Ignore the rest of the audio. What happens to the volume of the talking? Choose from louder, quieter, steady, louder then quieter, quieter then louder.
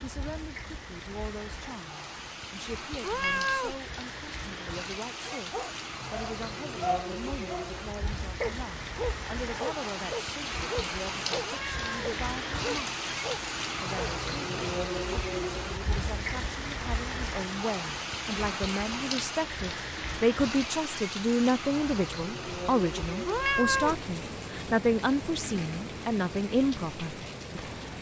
louder.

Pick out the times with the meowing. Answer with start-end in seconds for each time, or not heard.
3.0-3.8, 11.4-12.1, 23.2-24.0.